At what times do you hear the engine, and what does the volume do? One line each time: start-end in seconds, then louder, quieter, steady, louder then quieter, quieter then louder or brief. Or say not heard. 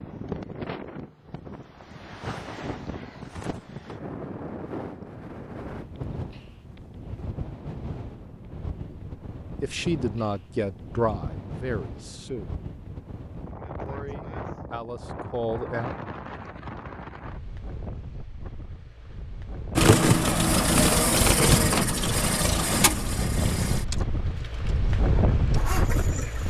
19.8-26.4 quieter.